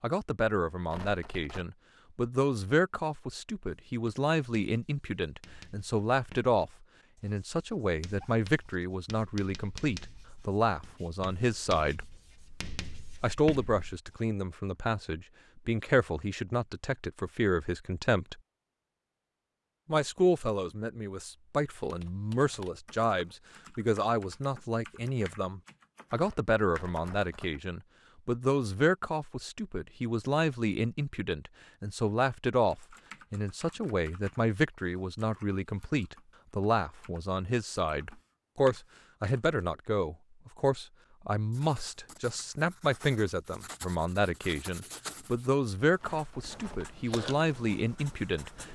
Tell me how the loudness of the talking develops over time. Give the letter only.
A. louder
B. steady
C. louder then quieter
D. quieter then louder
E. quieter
B.